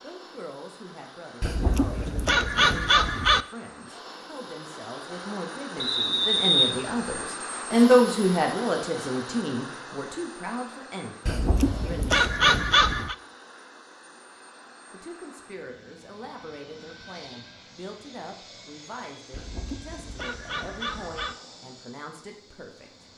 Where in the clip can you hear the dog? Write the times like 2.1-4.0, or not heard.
1.4-3.5, 11.2-13.2, 19.3-21.4.